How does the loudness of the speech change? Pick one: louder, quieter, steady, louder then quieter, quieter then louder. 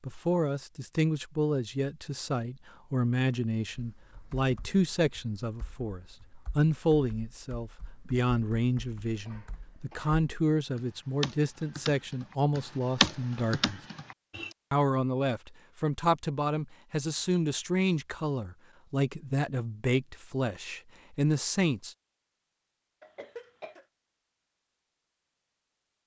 steady.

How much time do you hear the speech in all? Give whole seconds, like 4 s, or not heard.
21 s.